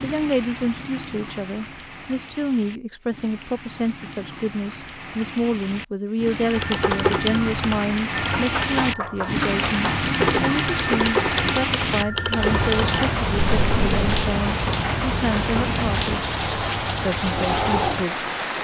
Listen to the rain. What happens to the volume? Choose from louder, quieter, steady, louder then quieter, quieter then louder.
louder.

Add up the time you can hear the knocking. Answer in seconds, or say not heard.
2 s.